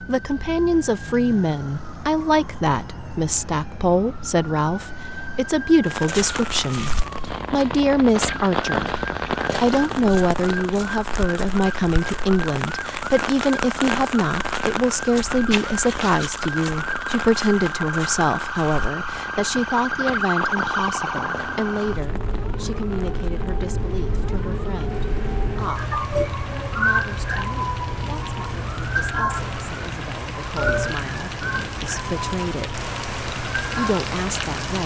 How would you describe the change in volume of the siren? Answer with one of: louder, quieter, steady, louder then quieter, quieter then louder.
louder.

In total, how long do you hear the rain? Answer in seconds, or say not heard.
29 s.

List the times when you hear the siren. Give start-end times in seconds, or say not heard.
0.0-34.6.